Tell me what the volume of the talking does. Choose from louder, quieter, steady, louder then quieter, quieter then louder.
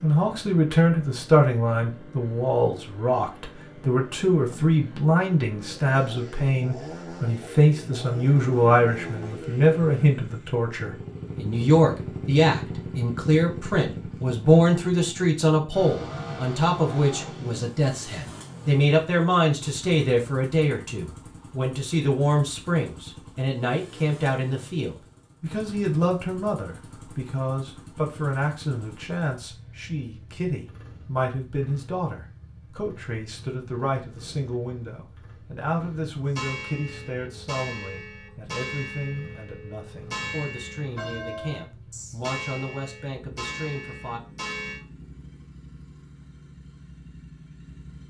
quieter.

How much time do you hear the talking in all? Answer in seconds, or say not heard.
44 s.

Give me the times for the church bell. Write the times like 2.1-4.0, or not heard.
36.3-44.8.